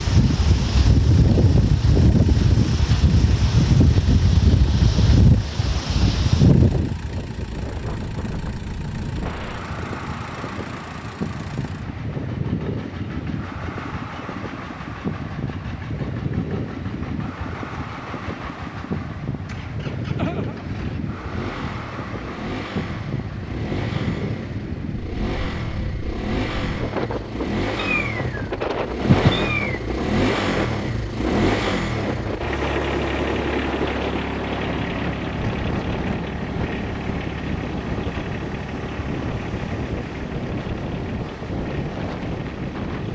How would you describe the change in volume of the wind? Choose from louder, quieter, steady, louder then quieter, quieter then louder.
quieter.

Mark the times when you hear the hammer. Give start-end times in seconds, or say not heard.
not heard.